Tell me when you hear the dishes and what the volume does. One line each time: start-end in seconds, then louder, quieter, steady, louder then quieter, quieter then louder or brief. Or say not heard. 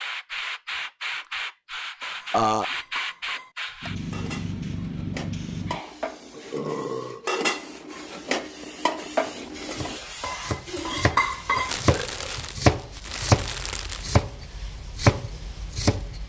2.0-11.8 louder.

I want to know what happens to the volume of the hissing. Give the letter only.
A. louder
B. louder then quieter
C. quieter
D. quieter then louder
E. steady
D.